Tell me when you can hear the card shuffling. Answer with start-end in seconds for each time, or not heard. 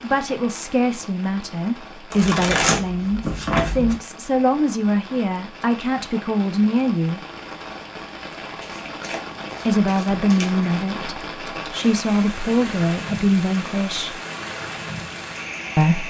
2.1-4.0, 8.4-10.8.